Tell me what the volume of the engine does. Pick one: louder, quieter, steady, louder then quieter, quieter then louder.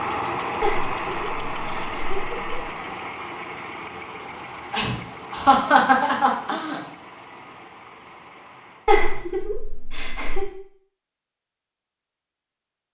quieter.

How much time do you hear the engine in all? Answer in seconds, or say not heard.
9 s.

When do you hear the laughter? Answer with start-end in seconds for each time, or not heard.
0.6-2.6, 4.7-6.8, 8.8-10.5.